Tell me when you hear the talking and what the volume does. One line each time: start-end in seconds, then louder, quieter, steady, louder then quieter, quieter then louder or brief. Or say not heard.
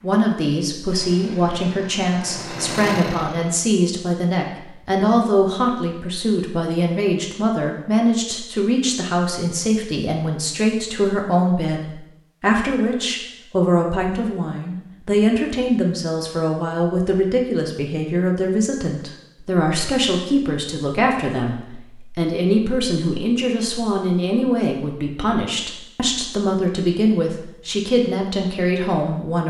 0.0-29.4 steady.